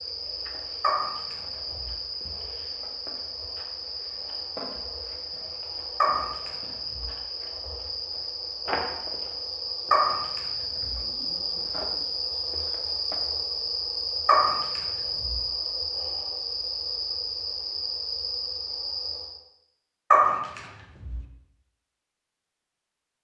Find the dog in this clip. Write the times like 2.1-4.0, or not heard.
0.8-1.9, 6.0-7.0, 9.9-10.9, 14.2-15.3, 20.1-21.1.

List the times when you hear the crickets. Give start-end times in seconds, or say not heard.
0.0-19.4.